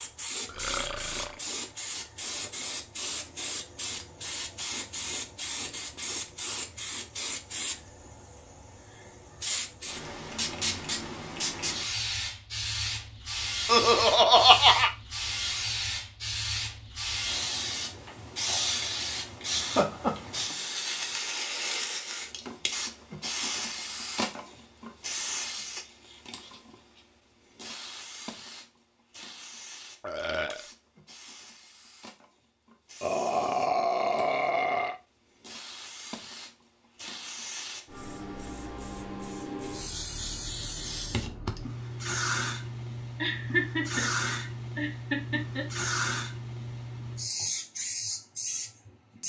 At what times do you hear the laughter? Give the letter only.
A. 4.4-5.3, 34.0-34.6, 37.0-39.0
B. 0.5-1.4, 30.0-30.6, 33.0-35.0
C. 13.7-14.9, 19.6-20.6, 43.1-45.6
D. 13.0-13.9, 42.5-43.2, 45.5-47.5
C.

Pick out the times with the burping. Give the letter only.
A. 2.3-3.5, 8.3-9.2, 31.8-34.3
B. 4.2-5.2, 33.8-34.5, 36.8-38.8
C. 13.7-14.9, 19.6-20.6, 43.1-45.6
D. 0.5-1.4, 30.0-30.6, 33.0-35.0
D.